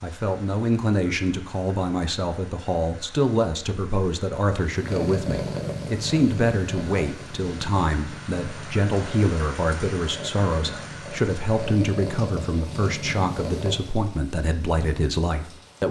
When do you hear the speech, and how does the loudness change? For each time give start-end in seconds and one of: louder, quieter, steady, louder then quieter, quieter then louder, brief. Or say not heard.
0.0-15.8 steady.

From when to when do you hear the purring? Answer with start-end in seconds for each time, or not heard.
4.6-14.2.